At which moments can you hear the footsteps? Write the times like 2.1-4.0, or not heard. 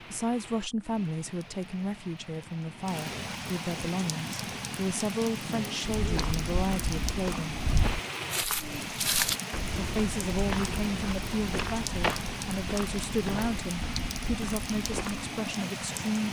5.8-15.3.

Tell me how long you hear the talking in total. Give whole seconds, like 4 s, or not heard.
14 s.